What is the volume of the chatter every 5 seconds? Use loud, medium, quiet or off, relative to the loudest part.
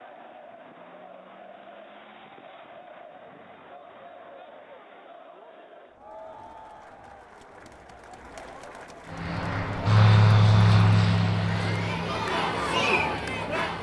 quiet, quiet, loud.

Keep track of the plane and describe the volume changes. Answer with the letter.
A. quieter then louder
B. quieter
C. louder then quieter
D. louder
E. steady
B.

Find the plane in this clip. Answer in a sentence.
The plane can be heard from 9.1 to 13.7 s.